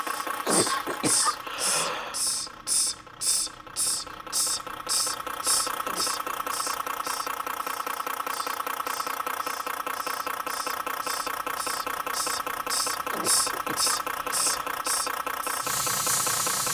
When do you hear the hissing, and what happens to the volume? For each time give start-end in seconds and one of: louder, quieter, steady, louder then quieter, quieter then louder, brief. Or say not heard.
0.0-16.6 quieter then louder.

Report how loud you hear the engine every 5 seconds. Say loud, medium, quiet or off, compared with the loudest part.
medium, loud, loud, loud.